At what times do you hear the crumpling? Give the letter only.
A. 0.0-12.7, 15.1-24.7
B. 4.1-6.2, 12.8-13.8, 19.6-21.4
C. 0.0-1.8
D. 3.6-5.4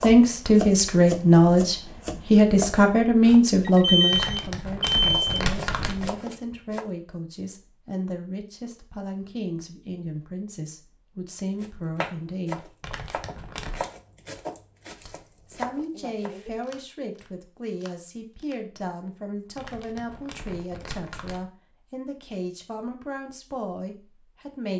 B.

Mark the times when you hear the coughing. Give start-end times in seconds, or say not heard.
not heard.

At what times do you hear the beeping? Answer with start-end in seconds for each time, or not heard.
3.6-5.4.